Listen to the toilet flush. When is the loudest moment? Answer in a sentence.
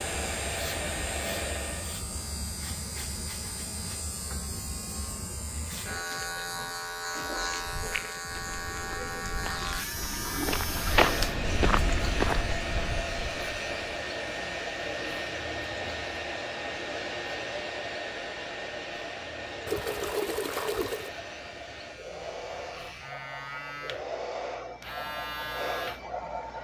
The loudest moment of the toilet flush is at 20 seconds.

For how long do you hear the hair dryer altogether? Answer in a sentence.
The hair dryer can be heard for 18 seconds in total.